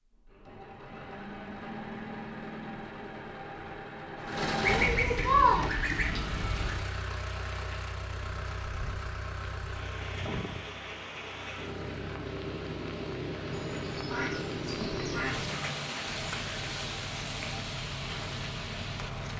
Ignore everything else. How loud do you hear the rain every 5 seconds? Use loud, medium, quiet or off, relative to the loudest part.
off, medium, loud, loud.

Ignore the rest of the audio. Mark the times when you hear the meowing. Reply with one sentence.
The meowing can't be heard in this clip.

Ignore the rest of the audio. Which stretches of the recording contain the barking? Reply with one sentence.
You can't hear the barking here.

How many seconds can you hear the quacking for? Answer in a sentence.
You can hear the quacking for 4 seconds altogether.